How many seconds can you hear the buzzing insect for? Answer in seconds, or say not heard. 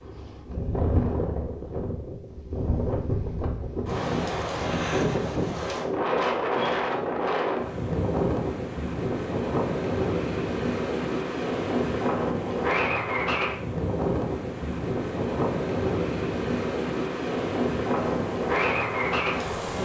2 s.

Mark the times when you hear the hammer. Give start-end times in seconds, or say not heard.
not heard.